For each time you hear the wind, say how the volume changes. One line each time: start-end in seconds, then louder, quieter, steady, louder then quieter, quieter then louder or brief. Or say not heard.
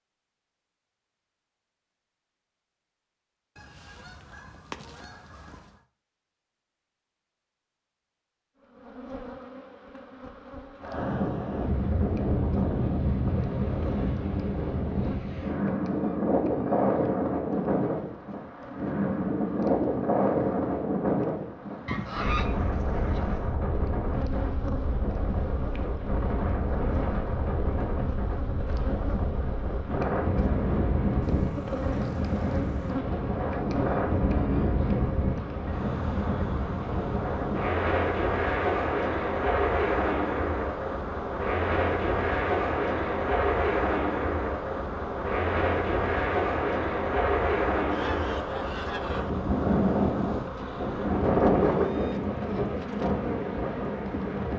10.8-54.5 steady.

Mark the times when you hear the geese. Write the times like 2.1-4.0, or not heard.
3.5-5.8, 21.9-23.4, 31.2-32.9, 47.9-49.3.